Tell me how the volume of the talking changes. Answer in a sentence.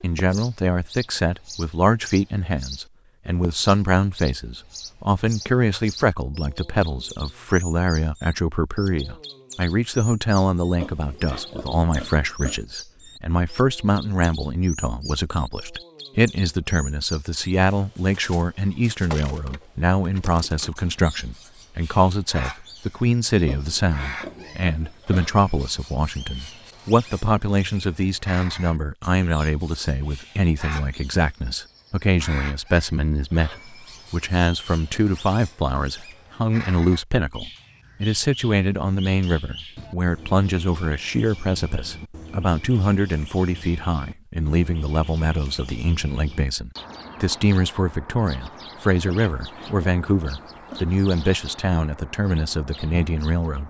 The volume of the talking stays about the same.